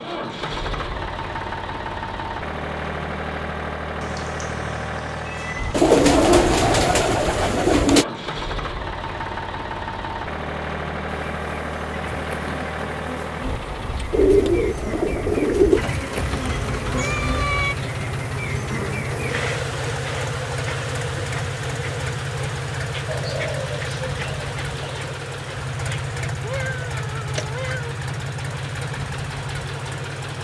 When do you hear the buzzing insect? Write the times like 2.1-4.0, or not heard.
11.2-30.3.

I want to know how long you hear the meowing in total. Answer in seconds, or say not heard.
5 s.